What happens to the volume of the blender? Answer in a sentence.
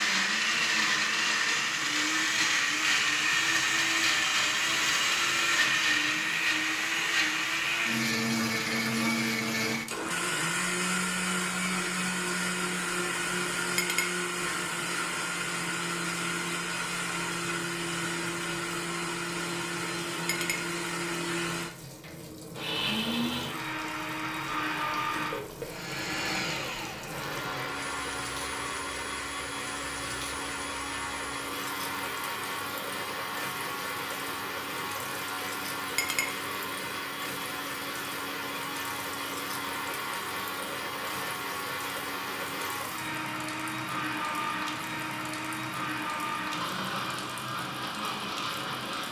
The loudness of the blender goes down.